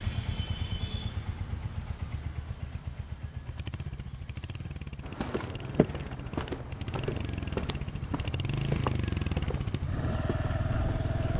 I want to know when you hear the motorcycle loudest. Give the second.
9 s.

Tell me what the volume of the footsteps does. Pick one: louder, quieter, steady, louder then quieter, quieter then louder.
quieter.